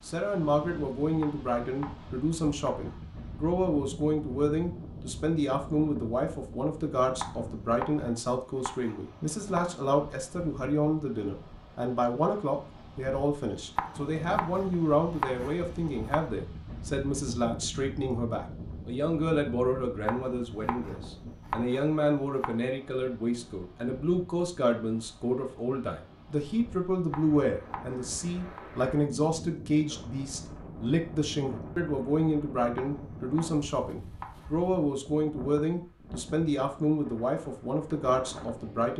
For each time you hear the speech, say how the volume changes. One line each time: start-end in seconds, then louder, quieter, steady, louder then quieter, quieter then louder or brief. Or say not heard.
0.0-38.9 steady.